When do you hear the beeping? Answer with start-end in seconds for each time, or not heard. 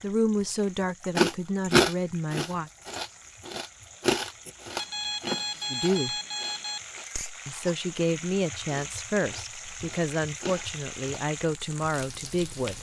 4.8-6.8.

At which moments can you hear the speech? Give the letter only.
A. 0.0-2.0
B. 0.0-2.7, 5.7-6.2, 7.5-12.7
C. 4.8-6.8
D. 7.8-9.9
B.